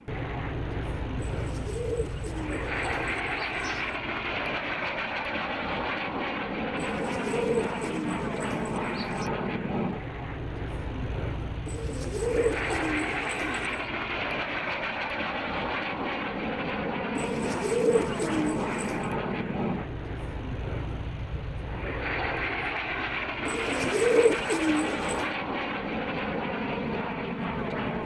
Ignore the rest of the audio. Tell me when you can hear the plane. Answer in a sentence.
You can hear the plane from 0.0 to 28.0 s.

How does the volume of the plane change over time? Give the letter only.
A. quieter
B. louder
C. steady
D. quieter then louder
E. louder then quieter
C.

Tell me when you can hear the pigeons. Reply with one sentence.
You can hear the pigeons from 1.1 to 4.0 s, from 6.8 to 9.3 s, from 11.7 to 13.8 s, from 17.1 to 19.1 s and from 23.4 to 25.3 s.